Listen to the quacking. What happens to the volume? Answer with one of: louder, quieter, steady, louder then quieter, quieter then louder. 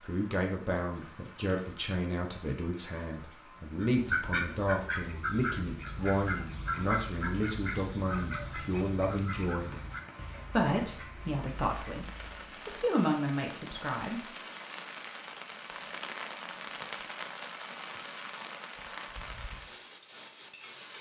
quieter.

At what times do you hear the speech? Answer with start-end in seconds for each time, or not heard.
0.0-9.8, 10.5-14.3.